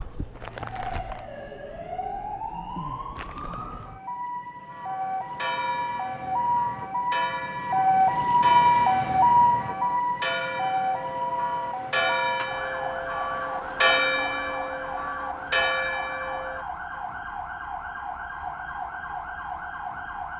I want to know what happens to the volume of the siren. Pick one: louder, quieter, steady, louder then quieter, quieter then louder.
louder then quieter.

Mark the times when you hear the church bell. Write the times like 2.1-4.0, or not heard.
4.7-17.0.